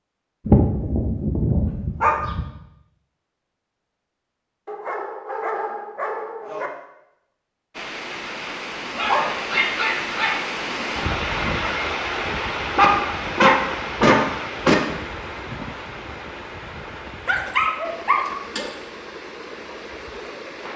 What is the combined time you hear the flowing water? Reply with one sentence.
You can hear the flowing water for 13 seconds altogether.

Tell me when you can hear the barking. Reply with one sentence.
The barking can be heard from 0.5 to 2.5 s, from 4.7 to 6.7 s, from 8.9 to 10.4 s, from 12.8 to 14.8 s and from 16.9 to 18.7 s.